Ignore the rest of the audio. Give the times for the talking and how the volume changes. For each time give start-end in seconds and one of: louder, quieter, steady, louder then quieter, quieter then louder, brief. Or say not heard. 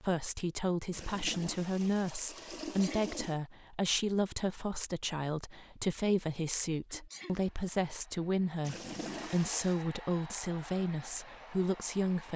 0.0-12.3 steady.